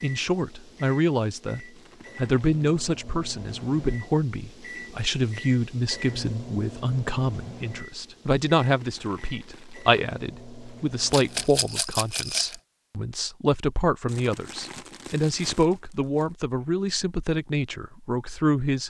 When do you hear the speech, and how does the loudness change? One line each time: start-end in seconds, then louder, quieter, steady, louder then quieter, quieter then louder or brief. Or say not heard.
0.0-18.8 steady.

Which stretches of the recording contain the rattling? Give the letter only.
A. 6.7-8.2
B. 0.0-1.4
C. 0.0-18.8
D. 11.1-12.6
D.